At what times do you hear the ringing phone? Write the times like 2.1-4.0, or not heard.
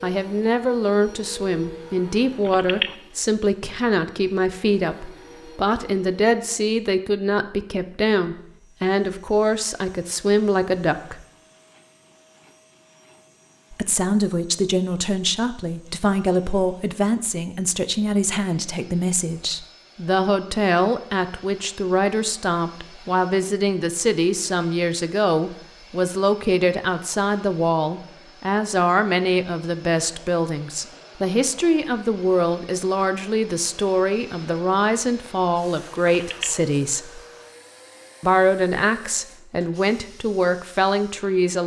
2.5-3.0, 36.1-36.5.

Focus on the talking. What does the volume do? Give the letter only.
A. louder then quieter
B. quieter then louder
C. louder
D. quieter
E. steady
E.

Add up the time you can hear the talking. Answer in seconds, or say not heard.
38 s.